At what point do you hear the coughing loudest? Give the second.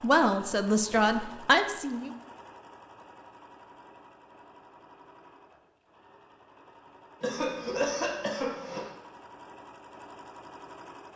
8 s.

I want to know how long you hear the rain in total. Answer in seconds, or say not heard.
not heard.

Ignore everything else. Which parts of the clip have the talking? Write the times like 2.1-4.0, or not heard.
0.0-2.1.